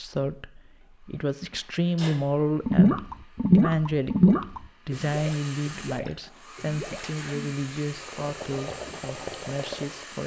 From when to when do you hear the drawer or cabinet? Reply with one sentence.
The drawer or cabinet can't be heard in this clip.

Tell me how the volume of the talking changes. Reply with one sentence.
The loudness of the talking goes down.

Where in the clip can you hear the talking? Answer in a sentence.
You can hear the talking from 0.0 to 10.2 s.